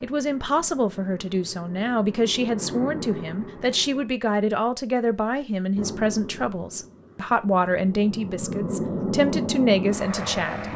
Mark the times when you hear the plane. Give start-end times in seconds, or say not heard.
0.0-4.1, 5.8-10.7.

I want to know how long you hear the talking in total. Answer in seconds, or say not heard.
11 s.